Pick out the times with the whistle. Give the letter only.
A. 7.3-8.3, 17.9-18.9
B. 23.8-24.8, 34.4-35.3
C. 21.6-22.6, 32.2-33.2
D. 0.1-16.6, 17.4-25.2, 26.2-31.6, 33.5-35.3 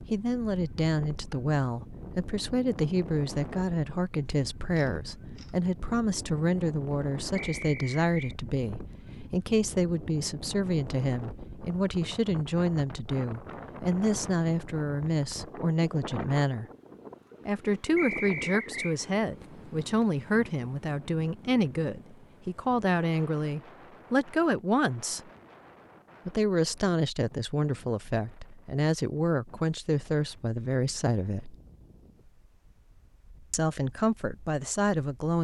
A.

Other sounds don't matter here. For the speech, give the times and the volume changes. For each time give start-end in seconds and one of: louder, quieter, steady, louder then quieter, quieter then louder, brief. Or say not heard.
0.1-16.6 steady
17.4-25.2 steady
26.2-31.6 steady
33.5-35.3 brief.